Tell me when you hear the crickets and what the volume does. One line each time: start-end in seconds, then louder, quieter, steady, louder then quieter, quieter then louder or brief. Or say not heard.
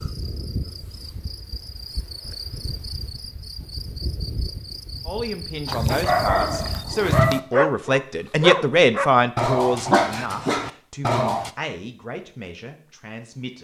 0.0-7.0 steady.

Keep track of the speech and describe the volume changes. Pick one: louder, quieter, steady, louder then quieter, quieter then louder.
louder then quieter.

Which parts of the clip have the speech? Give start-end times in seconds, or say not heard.
5.0-13.5.